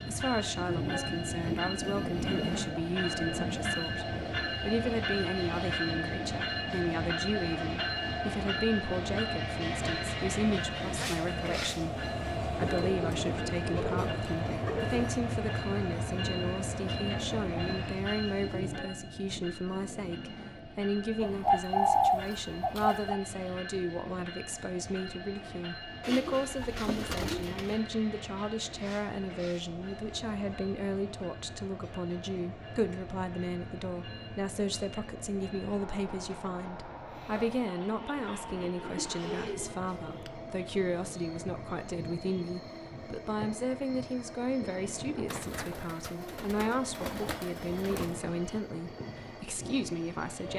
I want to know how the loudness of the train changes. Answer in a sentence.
The loudness of the train goes down.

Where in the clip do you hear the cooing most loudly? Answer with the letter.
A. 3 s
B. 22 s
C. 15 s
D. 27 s
B.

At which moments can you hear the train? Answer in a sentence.
The train can be heard from 0.0 to 50.5 s.